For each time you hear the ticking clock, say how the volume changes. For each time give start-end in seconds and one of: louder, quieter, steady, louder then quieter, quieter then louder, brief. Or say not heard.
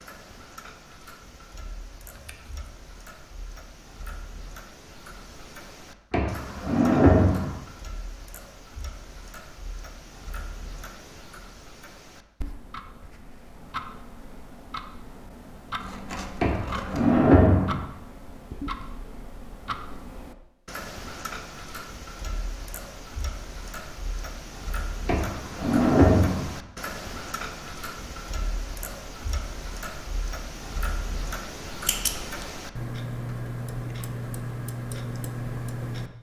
0.0-36.1 louder.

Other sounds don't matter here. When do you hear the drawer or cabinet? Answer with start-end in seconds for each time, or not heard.
6.1-7.5, 16.4-17.8, 25.1-26.5.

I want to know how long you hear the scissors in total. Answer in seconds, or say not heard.
3 s.